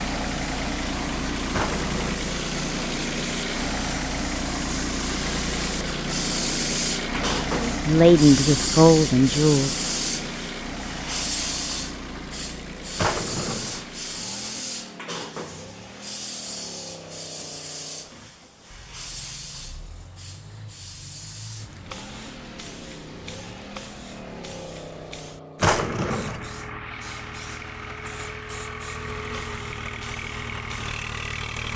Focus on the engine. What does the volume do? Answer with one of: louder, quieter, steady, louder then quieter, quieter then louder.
quieter then louder.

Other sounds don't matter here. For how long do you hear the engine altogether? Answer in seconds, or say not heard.
32 s.